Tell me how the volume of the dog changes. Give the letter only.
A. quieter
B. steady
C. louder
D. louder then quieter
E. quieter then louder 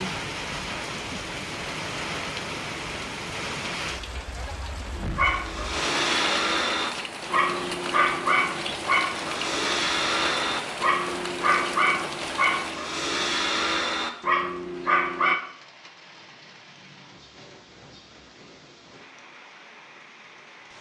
B.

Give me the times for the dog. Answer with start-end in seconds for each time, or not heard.
4.9-15.3.